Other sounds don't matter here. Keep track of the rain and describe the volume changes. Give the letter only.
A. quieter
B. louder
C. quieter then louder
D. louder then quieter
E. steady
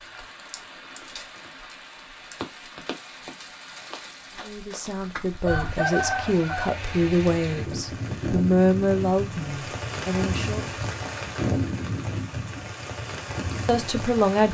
B.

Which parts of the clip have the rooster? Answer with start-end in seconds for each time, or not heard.
5.5-6.8.